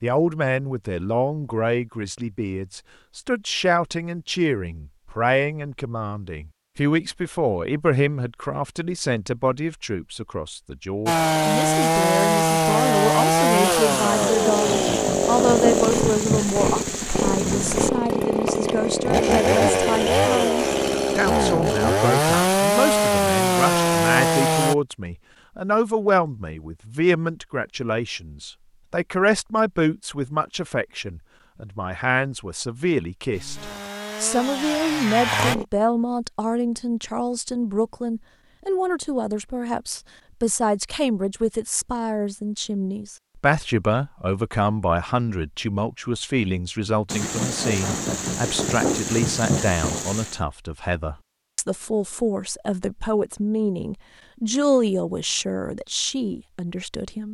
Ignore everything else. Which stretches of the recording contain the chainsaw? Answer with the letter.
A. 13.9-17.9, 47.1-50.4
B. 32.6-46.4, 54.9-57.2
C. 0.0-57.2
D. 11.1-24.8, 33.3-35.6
D.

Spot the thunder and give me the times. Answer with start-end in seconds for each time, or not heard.
13.9-17.9, 47.1-50.4.